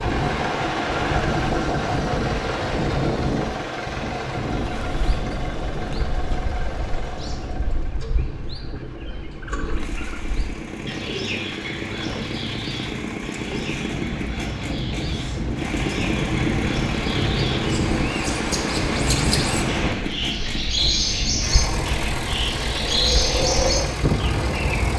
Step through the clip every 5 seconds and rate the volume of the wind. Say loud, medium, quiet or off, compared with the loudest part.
loud, medium, medium, loud, loud.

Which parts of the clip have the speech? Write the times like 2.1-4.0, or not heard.
not heard.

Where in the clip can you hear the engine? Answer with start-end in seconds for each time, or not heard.
0.0-24.9.